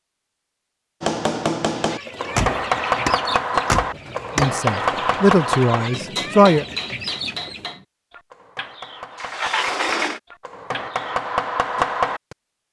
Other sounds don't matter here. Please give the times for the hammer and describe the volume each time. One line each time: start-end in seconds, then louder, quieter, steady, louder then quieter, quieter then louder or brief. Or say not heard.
1.0-12.3 quieter then louder.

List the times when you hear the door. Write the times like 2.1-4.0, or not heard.
2.1-4.5, 9.2-10.2.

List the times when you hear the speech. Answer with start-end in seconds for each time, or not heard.
4.3-6.7.